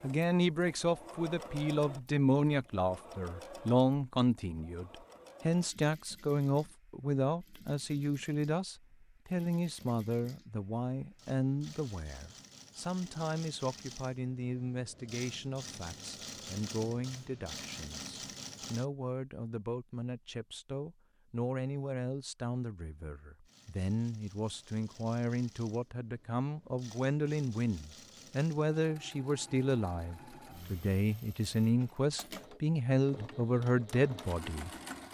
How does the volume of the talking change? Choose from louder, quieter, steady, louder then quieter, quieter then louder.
quieter then louder.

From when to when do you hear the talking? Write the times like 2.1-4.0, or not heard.
0.0-35.0.